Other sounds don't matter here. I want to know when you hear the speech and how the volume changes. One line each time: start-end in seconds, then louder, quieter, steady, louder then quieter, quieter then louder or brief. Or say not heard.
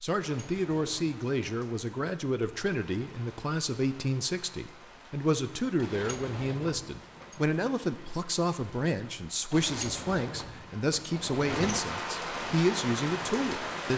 0.0-13.9 steady.